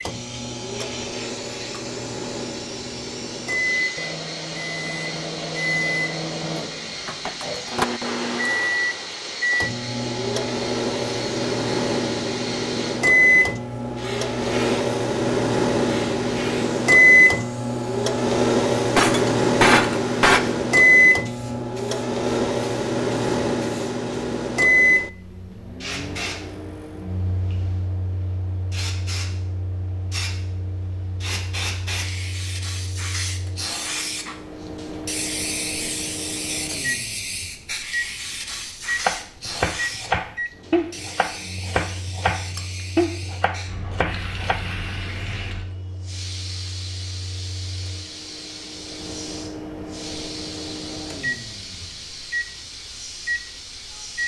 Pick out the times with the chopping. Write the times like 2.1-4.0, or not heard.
39.0-44.6.